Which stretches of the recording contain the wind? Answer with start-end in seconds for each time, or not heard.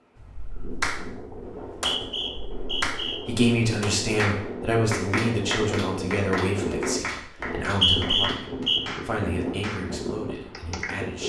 0.0-11.2.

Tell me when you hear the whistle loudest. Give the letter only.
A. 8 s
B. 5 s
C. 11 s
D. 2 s
A.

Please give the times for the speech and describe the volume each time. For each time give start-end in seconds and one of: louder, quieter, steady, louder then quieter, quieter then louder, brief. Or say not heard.
3.2-11.2 quieter.